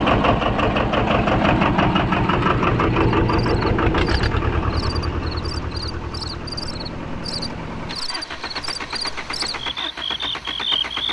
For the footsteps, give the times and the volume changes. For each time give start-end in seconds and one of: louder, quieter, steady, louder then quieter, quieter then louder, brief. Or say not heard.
not heard.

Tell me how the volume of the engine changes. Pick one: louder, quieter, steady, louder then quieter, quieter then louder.
quieter.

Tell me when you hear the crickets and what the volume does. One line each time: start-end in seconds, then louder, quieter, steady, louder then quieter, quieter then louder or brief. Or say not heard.
3.2-11.0 louder.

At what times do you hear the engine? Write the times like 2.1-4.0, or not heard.
0.0-11.0.